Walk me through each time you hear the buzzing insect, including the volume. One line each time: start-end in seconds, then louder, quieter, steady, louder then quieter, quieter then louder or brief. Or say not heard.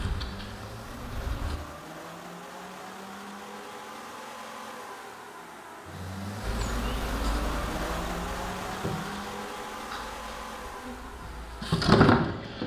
0.0-1.6 brief
6.4-12.6 quieter then louder.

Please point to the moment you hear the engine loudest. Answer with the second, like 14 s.
8 s.